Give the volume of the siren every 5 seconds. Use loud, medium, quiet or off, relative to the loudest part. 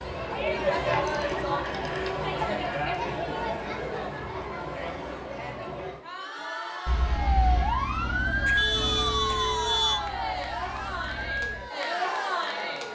off, loud, medium.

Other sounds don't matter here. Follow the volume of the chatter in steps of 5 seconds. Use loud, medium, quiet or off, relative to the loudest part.
loud, medium, loud.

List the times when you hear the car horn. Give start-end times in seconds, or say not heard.
8.4-10.0.